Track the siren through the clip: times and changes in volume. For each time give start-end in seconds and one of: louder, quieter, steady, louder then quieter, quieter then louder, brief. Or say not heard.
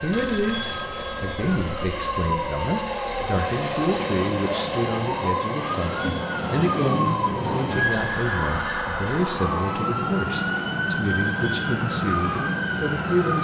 0.2-13.4 louder.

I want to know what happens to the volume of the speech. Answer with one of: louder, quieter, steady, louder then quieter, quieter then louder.
steady.